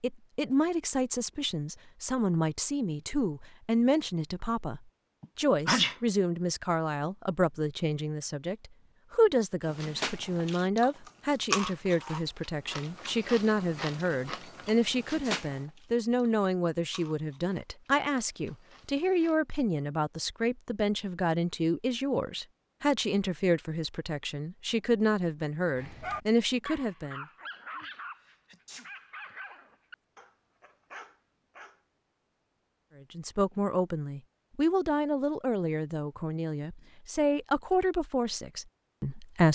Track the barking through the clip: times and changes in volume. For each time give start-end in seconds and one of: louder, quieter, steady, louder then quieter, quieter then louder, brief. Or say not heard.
25.8-31.8 quieter.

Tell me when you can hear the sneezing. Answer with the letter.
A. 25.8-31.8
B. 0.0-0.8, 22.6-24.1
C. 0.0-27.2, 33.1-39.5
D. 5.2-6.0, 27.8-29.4
D.